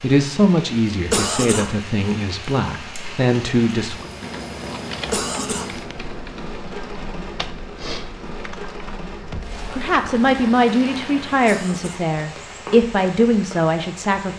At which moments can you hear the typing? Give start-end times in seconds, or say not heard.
4.2-10.3.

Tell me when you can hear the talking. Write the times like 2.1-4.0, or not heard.
0.0-4.1, 9.7-14.3.